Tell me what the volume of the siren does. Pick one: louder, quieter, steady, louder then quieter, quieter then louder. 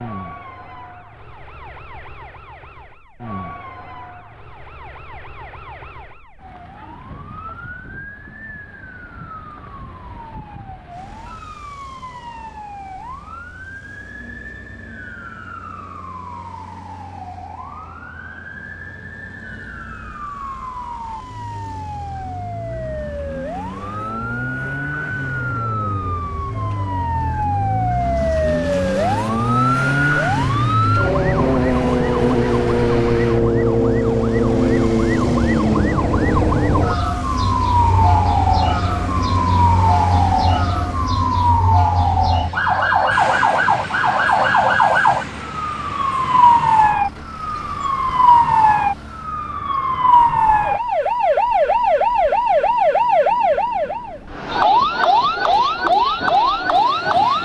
louder.